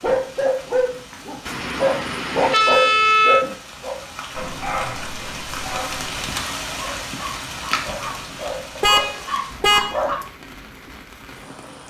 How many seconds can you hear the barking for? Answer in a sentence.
You can hear the barking for 10 seconds altogether.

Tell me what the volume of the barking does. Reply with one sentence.
The loudness of the barking goes down, then up.